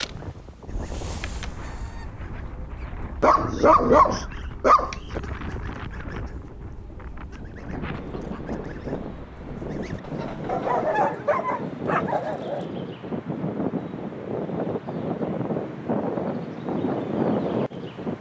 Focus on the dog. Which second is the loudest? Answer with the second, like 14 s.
4 s.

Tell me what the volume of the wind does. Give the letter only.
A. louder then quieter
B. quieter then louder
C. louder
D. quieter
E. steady
C.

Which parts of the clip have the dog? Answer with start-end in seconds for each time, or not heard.
3.2-5.2, 10.4-12.7.